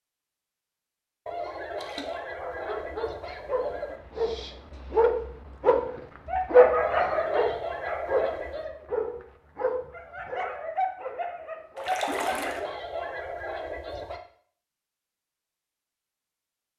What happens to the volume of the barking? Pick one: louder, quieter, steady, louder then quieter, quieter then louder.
louder then quieter.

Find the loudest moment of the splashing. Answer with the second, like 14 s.
12 s.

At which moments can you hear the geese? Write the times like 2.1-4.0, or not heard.
1.2-4.0, 6.8-8.7, 12.1-14.2.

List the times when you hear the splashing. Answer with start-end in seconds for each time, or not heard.
1.8-2.2, 11.8-12.6.